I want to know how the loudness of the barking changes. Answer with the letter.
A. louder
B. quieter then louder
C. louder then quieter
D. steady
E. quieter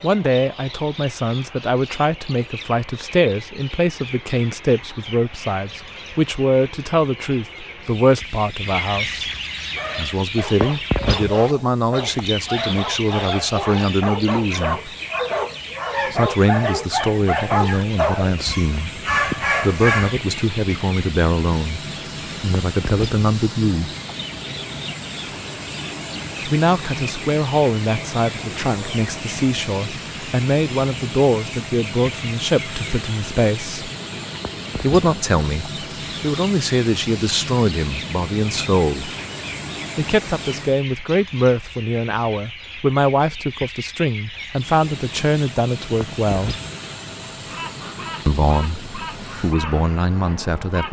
A.